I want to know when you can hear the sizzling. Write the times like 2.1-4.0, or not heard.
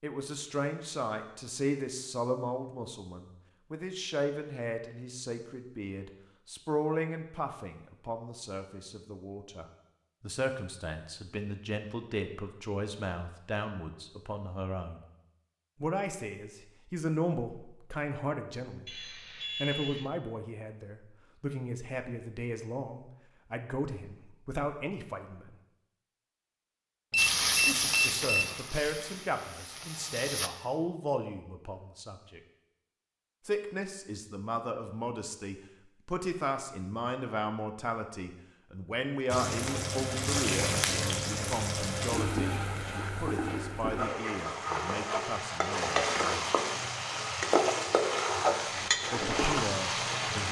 27.1-30.5, 39.3-50.4.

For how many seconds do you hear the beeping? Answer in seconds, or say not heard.
3 s.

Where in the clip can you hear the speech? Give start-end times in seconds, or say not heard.
0.0-15.1, 15.8-25.6, 27.6-32.4, 33.5-46.5, 49.1-50.4.